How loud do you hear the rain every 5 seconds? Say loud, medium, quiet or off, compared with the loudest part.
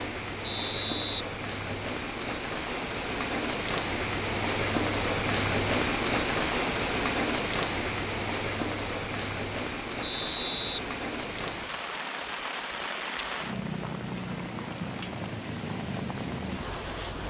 loud, loud, medium, medium.